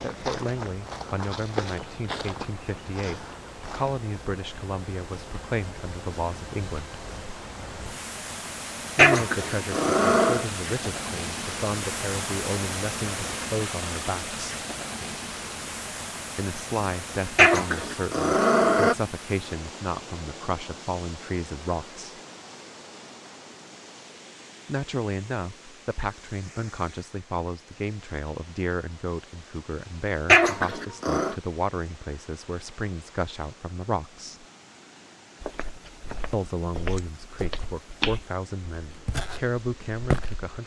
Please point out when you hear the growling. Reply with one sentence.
The growling can be heard from 8.9 to 10.4 s, from 17.4 to 18.9 s and from 30.2 to 31.4 s.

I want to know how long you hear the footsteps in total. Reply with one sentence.
The footsteps can be heard for 9 seconds in total.